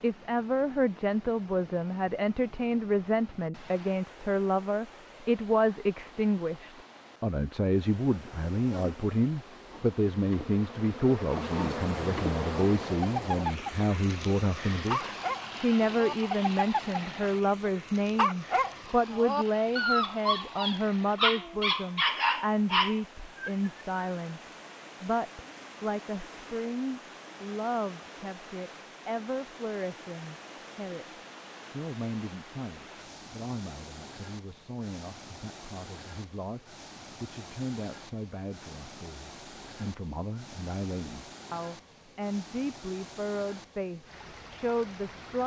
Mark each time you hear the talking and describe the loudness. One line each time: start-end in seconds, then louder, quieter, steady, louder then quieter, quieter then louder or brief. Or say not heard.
0.0-45.4 quieter.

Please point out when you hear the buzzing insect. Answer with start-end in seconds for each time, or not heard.
8.1-13.1.